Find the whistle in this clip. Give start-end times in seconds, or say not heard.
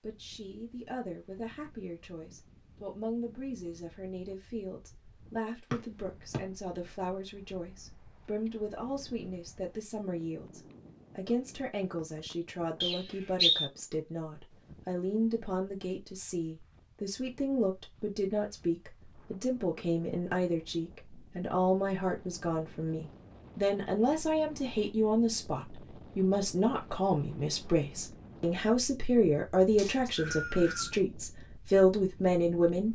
5.7-6.4, 12.8-13.7, 29.8-30.9.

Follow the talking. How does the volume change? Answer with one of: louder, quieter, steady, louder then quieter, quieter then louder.
louder.